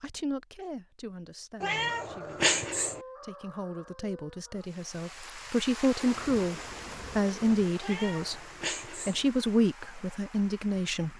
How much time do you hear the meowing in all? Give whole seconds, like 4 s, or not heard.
3 s.